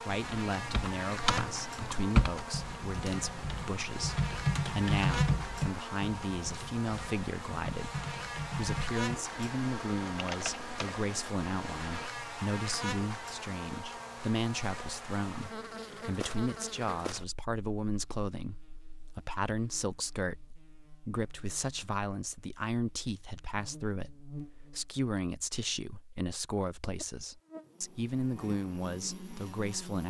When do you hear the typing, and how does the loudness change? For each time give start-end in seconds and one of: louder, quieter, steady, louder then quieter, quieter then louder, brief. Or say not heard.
0.1-12.1 quieter.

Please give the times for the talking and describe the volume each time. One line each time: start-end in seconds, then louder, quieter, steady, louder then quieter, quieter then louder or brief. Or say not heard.
0.0-30.0 steady.